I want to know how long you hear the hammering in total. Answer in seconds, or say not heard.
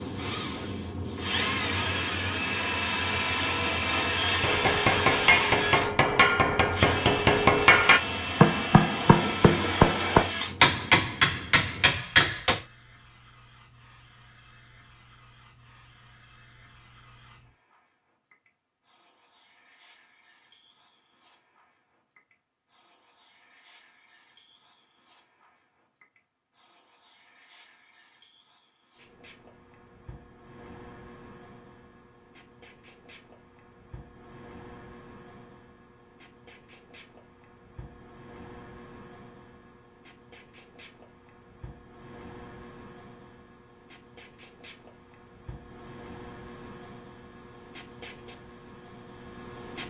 8 s.